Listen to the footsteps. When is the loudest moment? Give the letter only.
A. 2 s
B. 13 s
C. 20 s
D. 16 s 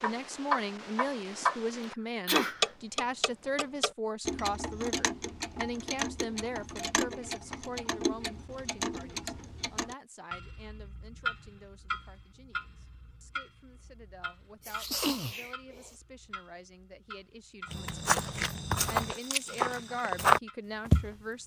C.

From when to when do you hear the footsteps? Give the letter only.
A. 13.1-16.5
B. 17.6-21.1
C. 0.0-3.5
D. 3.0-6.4
B.